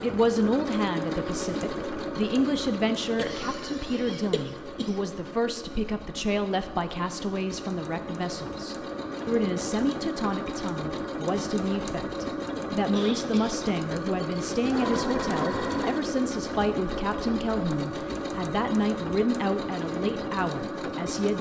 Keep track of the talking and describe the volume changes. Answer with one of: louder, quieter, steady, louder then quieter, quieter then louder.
steady.